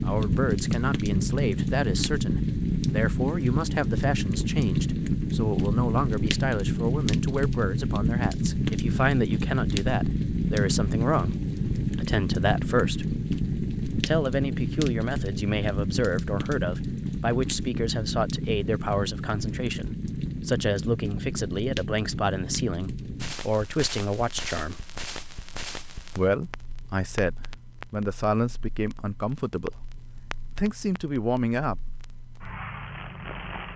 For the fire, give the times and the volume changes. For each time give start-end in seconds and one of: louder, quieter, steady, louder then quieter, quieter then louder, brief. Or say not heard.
0.0-33.7 quieter.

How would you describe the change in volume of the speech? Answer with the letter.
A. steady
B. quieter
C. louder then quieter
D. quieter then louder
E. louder
A.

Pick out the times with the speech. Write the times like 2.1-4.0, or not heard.
0.0-13.2, 14.1-24.8, 26.1-31.9.